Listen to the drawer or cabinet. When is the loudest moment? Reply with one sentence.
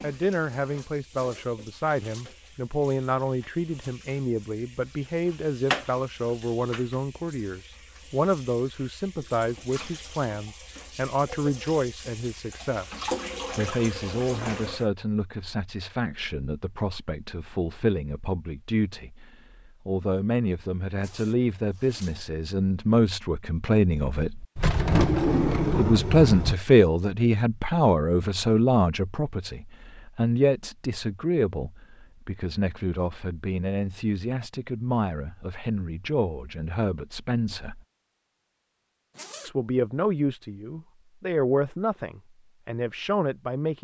The volume of the drawer or cabinet peaks at 25 seconds.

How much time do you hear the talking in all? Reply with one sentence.
The talking can be heard for 41 seconds in total.